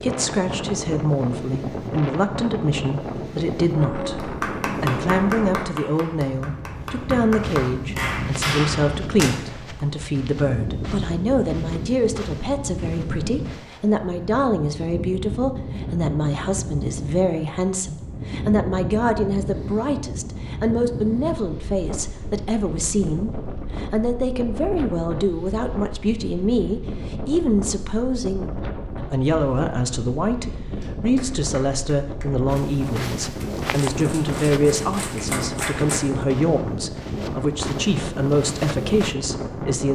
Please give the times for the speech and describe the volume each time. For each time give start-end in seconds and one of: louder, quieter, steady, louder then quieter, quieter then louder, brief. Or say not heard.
0.0-39.9 steady.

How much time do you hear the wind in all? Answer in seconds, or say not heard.
40 s.